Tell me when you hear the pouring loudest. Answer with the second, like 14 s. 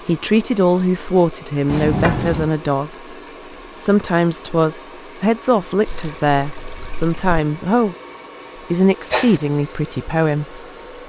2 s.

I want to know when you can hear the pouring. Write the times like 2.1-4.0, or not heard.
1.7-2.5, 5.8-7.4.